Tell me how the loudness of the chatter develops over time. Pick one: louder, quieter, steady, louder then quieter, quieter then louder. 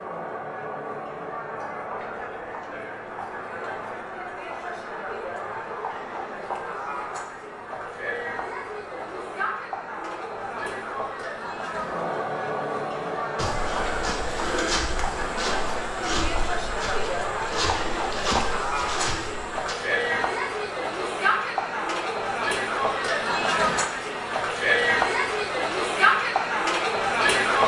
louder.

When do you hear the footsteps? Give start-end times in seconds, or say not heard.
13.3-19.8.